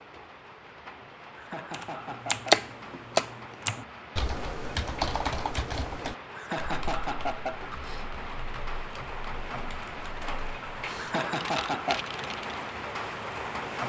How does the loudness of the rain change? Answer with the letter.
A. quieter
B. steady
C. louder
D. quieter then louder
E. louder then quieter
C.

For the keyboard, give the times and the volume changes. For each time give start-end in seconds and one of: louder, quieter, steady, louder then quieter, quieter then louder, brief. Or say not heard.
1.7-12.7 quieter then louder.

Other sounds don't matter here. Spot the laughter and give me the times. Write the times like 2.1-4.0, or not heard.
1.4-2.6, 6.3-7.6, 10.9-12.1.